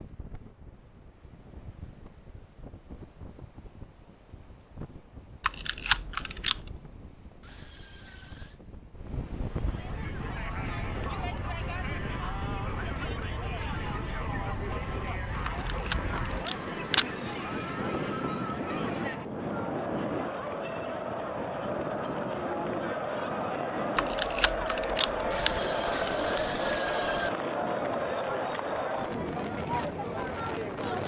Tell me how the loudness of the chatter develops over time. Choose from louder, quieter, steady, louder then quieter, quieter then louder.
louder.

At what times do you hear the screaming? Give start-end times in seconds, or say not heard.
7.4-8.6, 16.2-18.2, 25.3-27.3.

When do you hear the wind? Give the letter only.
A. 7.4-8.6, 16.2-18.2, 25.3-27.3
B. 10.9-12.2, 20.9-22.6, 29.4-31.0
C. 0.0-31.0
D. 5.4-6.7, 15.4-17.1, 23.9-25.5
C.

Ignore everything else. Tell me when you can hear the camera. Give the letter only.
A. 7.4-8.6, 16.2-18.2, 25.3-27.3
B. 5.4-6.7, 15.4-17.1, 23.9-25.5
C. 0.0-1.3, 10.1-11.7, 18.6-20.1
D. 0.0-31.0
B.